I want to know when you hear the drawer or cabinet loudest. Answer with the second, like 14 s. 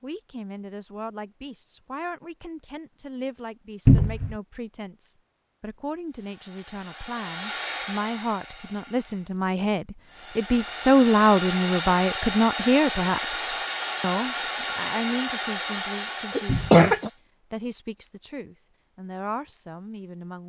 4 s.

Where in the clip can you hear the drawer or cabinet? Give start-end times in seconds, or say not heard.
3.9-4.3, 16.4-16.9.